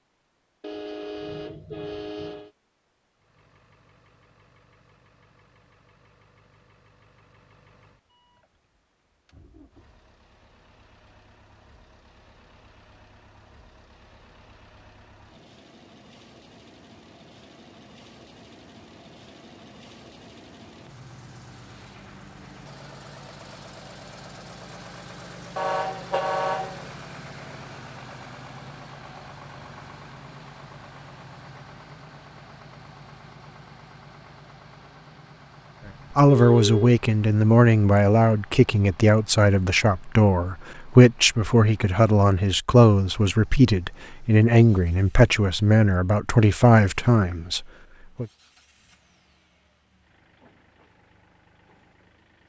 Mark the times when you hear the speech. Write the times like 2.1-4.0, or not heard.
36.1-48.2.